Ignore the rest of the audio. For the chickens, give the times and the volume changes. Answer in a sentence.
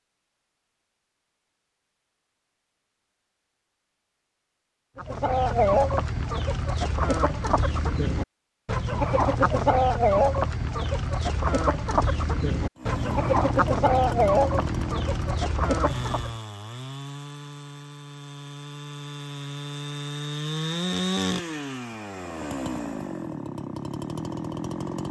The chickens can be heard from 5.0 to 16.4 s, at a steady volume.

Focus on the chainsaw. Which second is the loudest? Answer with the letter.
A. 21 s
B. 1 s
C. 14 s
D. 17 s
A.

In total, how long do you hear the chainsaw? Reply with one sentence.
You can hear the chainsaw for 12 seconds altogether.